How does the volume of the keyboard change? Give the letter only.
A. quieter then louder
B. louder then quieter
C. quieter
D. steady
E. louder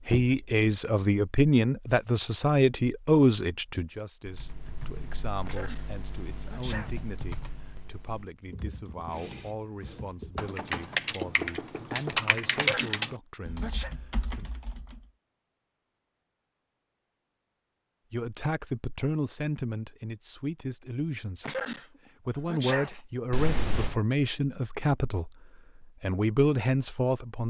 E.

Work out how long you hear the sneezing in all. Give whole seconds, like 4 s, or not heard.
3 s.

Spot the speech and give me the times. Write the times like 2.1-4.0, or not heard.
0.1-14.5, 18.1-21.6, 22.2-27.4.